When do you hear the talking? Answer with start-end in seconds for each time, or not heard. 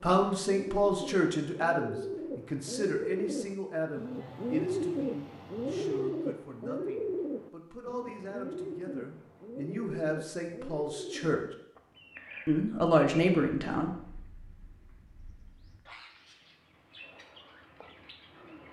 0.0-11.4, 12.4-13.9.